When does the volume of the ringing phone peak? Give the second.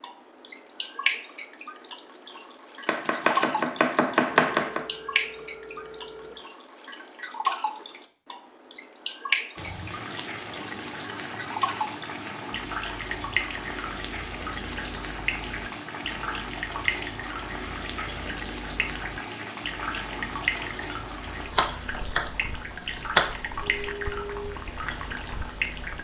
24 s.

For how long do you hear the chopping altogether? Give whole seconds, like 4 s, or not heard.
4 s.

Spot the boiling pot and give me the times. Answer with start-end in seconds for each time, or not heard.
9.6-26.0.